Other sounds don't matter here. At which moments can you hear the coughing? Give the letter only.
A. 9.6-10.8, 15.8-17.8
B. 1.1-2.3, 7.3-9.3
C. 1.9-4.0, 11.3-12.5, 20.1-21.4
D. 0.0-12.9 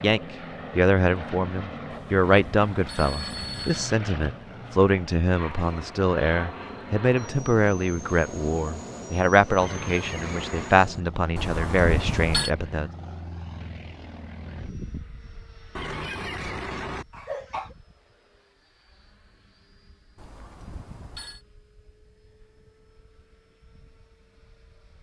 A.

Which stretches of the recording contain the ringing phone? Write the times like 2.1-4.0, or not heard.
1.9-4.0, 11.3-12.5, 20.1-21.4.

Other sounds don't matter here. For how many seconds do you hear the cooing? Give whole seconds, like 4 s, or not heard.
not heard.